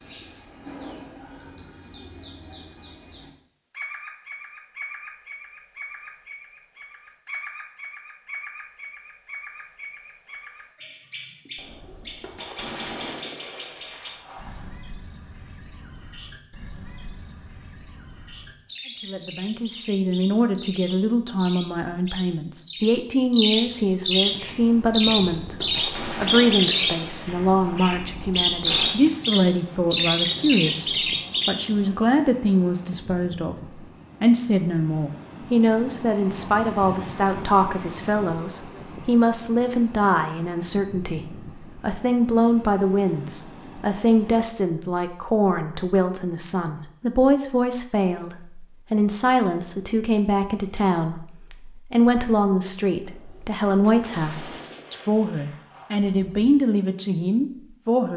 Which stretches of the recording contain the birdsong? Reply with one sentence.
The birdsong can be heard from 0.0 to 31.5 s.